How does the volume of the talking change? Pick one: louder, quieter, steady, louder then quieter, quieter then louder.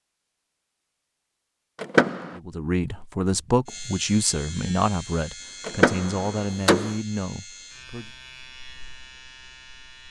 quieter.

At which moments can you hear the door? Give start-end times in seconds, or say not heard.
1.8-2.4, 5.7-7.0.